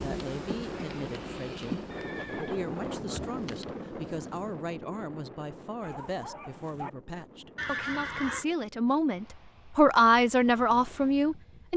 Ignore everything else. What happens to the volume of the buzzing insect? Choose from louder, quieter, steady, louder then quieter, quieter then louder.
quieter.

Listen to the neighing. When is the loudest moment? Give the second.
8 s.